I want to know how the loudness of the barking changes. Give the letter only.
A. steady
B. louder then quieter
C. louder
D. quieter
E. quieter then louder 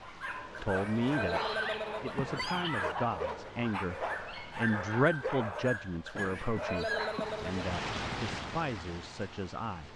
A.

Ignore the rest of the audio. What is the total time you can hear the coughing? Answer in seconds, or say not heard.
3 s.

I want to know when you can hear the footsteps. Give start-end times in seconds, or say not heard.
not heard.